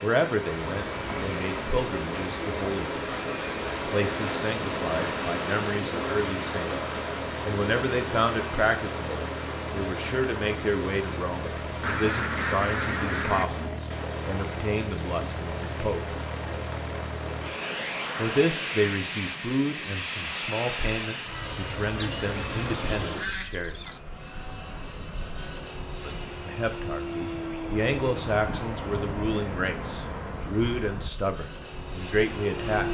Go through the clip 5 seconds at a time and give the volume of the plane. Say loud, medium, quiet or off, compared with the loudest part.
loud, medium, loud, loud, loud, loud, loud.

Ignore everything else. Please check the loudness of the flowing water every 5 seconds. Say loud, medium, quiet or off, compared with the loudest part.
loud, loud, medium, medium, off, off, off.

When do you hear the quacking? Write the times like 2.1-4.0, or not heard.
11.8-13.5, 21.9-24.0.